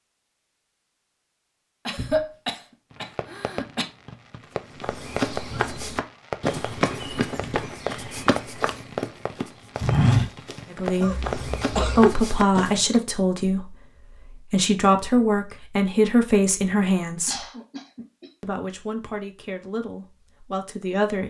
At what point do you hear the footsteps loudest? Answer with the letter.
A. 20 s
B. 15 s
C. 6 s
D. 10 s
D.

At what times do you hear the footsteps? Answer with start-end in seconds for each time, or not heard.
4.8-13.0.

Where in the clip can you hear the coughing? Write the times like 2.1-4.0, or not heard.
1.9-3.9, 11.0-12.2, 17.2-18.3.